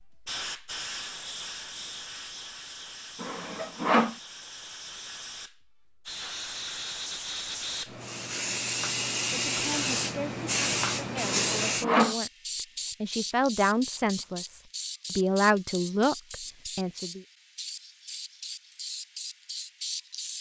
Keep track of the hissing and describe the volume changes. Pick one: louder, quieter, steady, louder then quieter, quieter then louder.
louder then quieter.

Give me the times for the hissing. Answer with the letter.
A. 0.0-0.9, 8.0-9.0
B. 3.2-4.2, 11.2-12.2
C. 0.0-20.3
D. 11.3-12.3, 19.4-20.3
C.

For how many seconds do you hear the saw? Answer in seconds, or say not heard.
2 s.